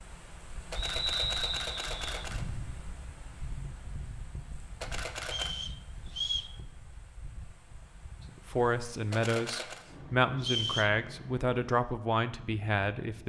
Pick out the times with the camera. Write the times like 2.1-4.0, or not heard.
0.7-2.5, 4.8-5.5, 9.1-9.8.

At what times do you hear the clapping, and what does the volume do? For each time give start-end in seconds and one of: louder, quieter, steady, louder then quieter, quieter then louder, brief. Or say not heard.
not heard.